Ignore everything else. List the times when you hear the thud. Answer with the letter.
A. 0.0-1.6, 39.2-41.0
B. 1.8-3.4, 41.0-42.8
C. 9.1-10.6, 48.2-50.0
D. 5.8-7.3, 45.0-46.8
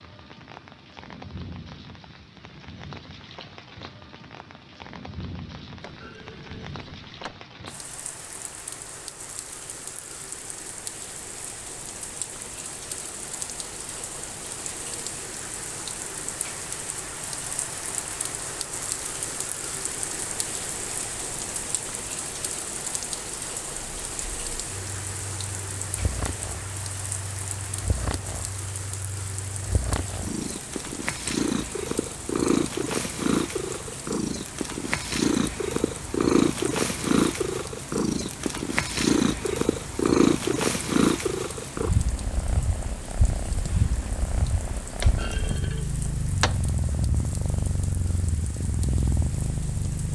D.